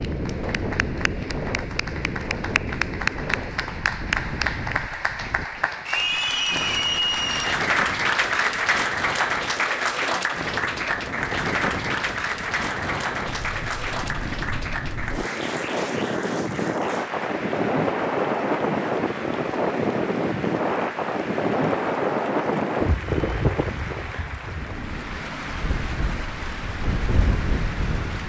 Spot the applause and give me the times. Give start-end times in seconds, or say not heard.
0.0-28.2.